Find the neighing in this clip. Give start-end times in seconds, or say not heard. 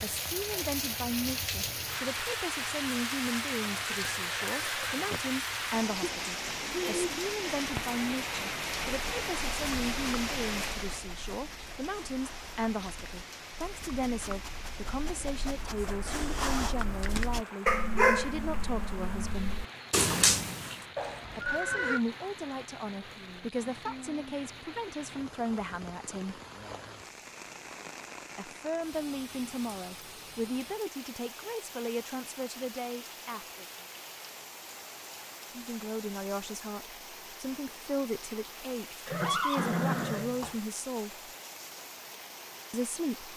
3.6-5.2, 20.9-22.0, 39.0-40.6.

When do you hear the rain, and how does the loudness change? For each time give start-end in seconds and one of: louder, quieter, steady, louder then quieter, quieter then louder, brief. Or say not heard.
0.0-43.3 quieter.